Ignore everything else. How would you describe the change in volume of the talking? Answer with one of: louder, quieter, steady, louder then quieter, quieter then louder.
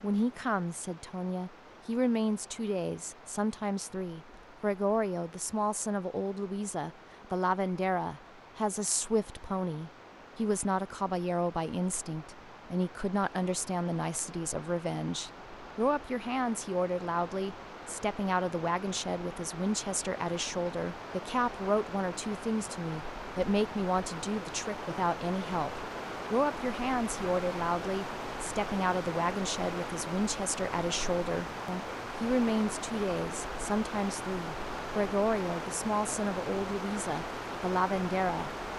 steady.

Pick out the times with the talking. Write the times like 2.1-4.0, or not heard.
0.0-38.5.